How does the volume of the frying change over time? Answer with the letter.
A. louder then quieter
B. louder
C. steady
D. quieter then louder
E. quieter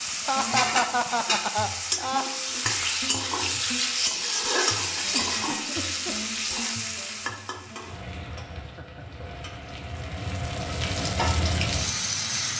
D.